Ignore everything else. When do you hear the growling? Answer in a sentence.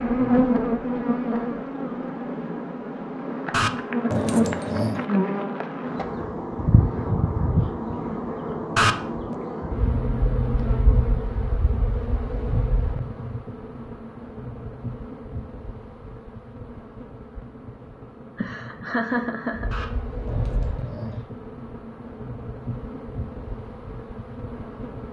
The growling can be heard from 3.5 to 5.0 s, from 8.8 to 9.3 s and from 19.7 to 21.2 s.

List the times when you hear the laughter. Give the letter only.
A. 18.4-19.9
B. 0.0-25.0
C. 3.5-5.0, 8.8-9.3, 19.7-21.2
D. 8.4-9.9
A.